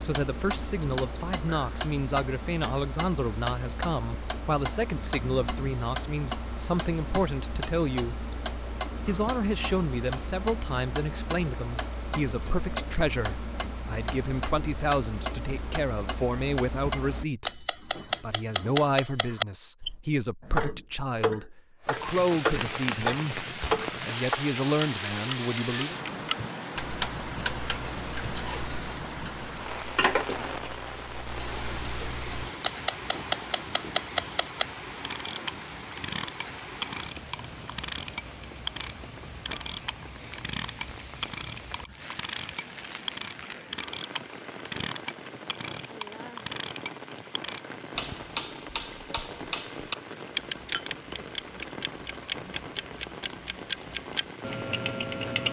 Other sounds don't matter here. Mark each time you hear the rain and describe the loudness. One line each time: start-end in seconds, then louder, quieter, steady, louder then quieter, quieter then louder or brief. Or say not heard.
21.9-55.4 quieter.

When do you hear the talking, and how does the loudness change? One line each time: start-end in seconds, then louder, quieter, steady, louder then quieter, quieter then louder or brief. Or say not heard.
0.0-8.3 steady
9.0-25.9 steady.